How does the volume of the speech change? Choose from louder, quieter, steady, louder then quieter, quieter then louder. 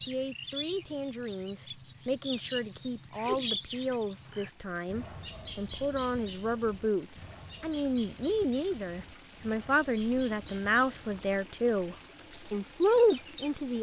louder.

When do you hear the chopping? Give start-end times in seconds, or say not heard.
not heard.